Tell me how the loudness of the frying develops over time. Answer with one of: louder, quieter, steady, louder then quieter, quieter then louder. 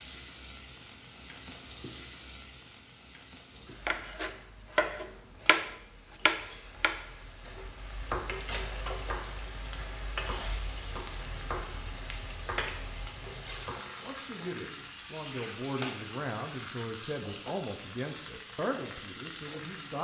quieter then louder.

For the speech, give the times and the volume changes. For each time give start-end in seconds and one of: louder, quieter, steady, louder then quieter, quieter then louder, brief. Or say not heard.
14.0-19.9 steady.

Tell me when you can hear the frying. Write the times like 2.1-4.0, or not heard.
0.0-19.9.